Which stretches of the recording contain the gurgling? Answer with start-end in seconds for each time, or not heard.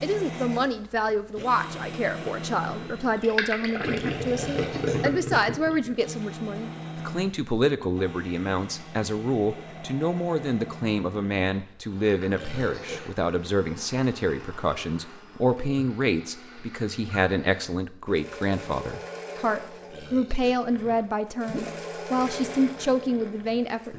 2.9-6.0, 20.6-23.9.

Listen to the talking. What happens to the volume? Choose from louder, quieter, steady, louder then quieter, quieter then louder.
steady.